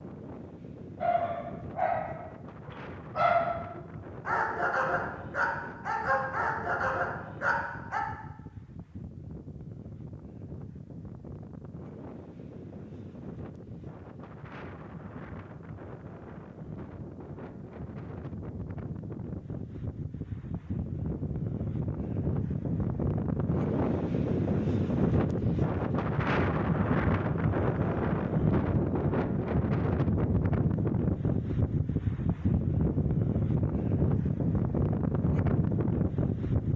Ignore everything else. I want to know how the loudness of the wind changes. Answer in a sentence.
The volume of the wind goes up.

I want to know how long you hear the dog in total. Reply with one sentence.
The dog can be heard for 7 seconds in total.